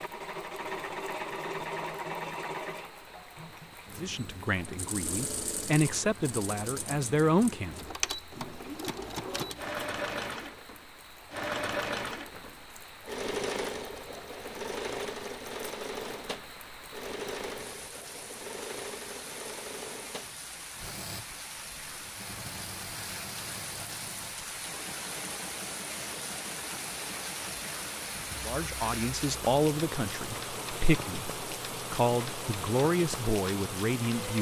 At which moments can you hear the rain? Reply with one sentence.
The rain can be heard from 0.0 to 34.3 s.